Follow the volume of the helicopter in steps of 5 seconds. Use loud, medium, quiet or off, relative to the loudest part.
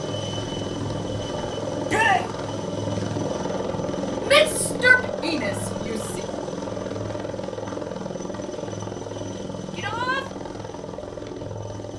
loud, loud, medium.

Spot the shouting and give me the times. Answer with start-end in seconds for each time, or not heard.
1.9-2.3, 4.2-6.2, 9.7-10.2.